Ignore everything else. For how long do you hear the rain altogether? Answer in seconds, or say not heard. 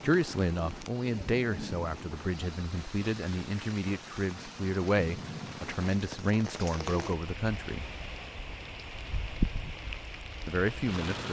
11 s.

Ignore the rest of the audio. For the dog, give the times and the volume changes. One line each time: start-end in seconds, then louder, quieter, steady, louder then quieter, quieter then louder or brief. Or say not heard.
not heard.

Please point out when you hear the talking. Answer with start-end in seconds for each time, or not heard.
0.0-7.9, 10.4-11.2.